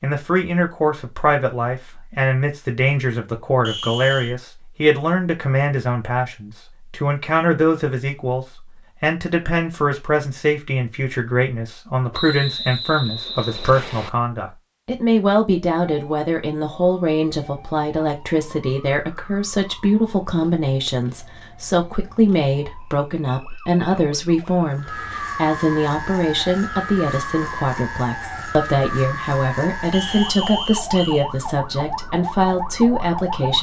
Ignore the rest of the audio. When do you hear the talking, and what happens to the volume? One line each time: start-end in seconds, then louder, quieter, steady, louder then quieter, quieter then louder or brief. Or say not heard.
0.0-33.5 steady.